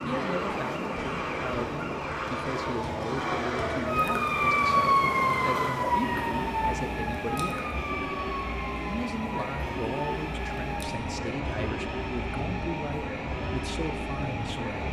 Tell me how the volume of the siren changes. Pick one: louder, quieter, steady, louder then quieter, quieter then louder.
louder then quieter.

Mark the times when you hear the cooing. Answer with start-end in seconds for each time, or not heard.
not heard.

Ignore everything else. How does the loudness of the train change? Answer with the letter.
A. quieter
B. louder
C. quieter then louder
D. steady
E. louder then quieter
D.